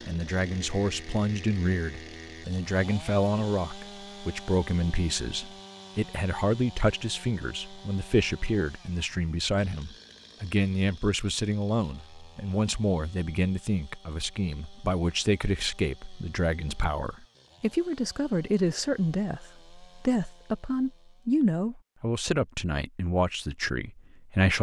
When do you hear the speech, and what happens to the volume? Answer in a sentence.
You can hear the speech from 0.1 to 24.5 s, at a steady volume.